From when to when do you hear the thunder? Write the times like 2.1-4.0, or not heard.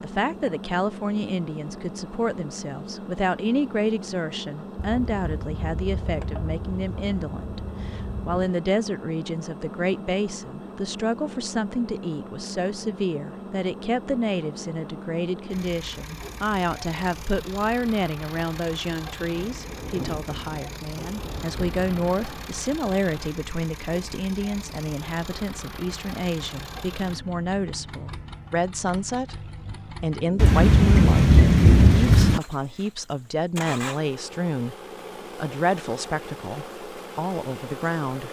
4.8-8.4, 19.4-22.6, 30.4-32.4.